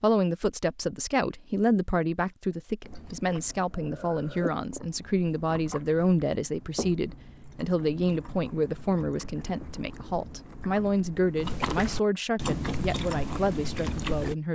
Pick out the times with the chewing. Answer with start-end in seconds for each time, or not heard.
2.8-14.3.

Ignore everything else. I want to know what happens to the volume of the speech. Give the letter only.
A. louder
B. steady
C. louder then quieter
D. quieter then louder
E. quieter
B.